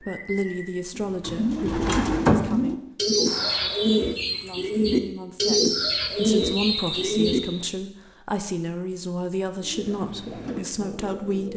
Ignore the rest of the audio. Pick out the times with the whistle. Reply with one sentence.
You can hear the whistle from 3.2 to 4.0 s and from 6.3 to 7.7 s.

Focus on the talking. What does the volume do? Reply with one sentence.
The volume of the talking goes down, then up.